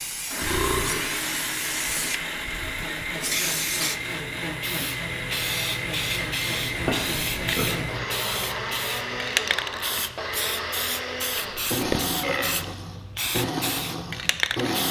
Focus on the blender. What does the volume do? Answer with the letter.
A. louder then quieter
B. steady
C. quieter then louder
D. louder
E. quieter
B.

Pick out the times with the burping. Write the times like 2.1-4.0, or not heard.
0.4-1.1, 6.4-8.2, 11.6-12.6.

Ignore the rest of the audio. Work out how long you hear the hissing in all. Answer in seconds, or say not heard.
15 s.